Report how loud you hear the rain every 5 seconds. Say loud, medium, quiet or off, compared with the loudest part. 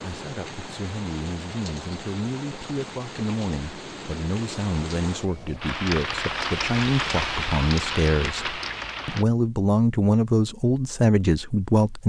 medium, loud, off.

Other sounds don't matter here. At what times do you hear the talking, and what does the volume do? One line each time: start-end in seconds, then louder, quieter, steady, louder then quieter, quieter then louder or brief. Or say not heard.
0.0-12.0 louder.